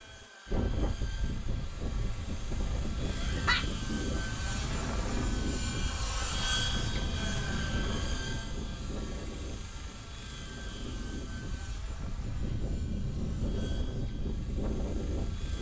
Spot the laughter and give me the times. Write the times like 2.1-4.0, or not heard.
3.1-3.6.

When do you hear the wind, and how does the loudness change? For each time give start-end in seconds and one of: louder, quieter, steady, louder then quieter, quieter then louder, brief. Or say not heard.
0.0-15.5 quieter then louder.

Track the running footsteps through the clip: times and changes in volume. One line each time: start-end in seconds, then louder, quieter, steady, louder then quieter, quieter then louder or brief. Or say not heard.
not heard.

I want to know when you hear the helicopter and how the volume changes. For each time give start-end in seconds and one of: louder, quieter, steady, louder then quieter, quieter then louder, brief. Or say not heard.
0.0-15.5 louder then quieter.